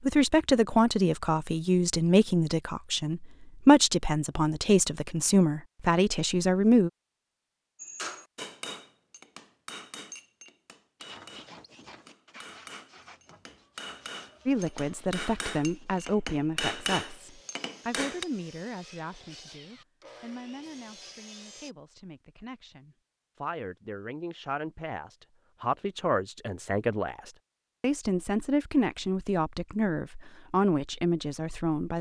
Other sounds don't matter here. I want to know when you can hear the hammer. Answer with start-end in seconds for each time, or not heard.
7.8-18.2.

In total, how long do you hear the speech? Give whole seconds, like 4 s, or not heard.
24 s.